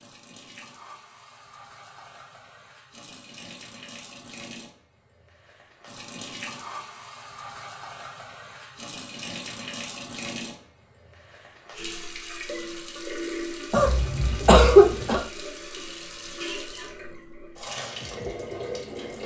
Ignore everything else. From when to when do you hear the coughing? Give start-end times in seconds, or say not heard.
13.7-15.2.